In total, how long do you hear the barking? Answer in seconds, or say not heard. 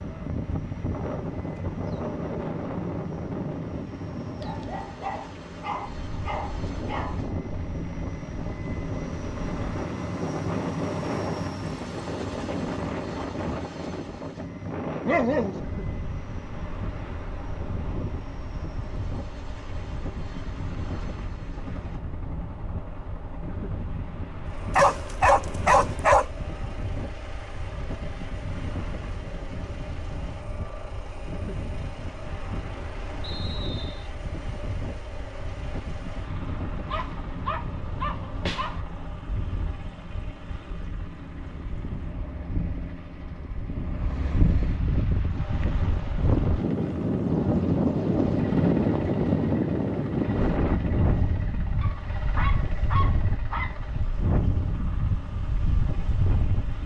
9 s.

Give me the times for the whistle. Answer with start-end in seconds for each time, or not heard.
33.2-34.1.